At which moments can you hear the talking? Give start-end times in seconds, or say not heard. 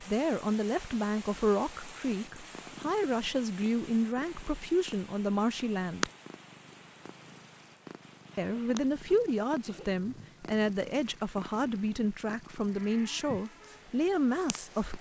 0.0-6.1, 8.3-14.9.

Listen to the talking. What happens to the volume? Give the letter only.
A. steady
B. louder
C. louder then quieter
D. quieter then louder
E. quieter
A.